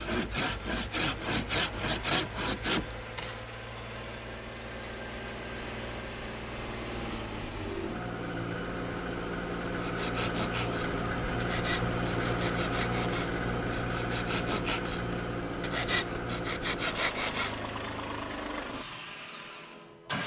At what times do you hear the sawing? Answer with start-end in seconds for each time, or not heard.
0.0-3.4, 9.8-17.6.